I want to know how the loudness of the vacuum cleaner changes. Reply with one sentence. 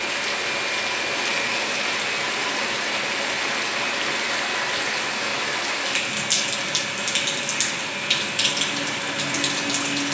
The loudness of the vacuum cleaner stays about the same.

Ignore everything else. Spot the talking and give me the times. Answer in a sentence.
You can't hear the talking here.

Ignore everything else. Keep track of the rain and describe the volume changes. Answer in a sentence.
The volume of the rain stays about the same.